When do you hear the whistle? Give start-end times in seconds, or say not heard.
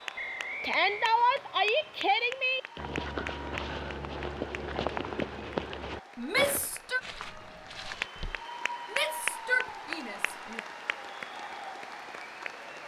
0.1-1.1.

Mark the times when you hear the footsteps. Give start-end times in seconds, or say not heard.
2.8-8.4.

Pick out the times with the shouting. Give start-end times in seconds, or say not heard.
0.6-2.6, 6.2-7.0, 8.9-10.6.